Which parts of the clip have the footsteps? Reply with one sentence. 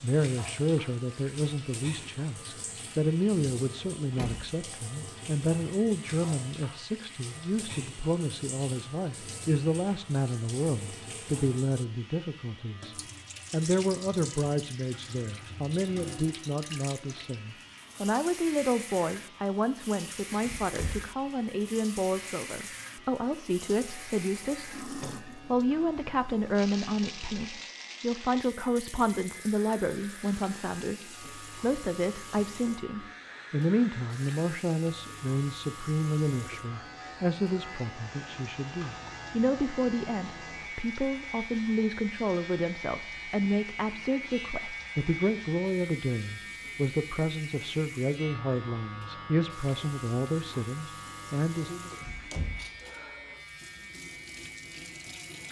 You can't hear the footsteps here.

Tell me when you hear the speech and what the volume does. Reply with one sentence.
The speech can be heard from 0.0 to 51.9 s, at a steady volume.